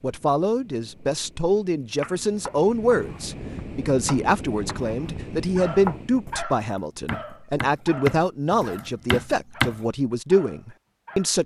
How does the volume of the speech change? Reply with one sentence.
The loudness of the speech stays about the same.